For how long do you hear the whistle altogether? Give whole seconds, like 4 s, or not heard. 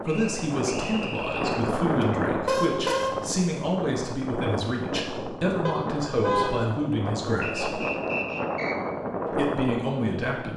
3 s.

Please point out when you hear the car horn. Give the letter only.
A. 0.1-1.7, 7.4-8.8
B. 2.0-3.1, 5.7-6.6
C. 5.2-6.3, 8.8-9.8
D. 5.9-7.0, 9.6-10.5
B.